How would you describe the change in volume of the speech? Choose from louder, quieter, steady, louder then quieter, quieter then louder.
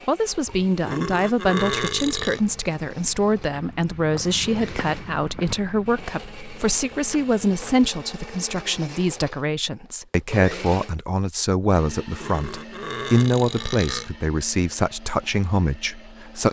steady.